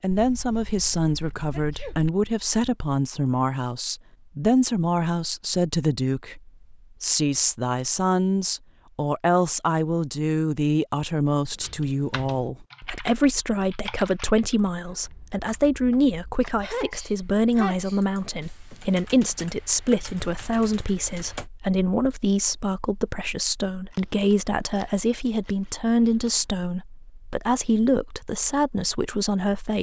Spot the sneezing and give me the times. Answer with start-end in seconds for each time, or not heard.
1.5-1.9, 16.6-18.1.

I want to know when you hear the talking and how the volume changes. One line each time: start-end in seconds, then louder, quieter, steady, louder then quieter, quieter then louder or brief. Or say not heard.
0.0-29.7 steady.